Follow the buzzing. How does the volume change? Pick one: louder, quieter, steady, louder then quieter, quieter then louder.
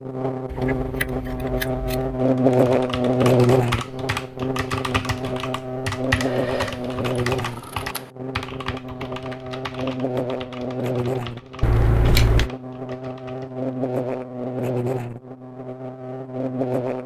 quieter.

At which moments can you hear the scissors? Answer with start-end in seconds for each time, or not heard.
0.5-2.2, 6.1-8.1, 11.6-12.5.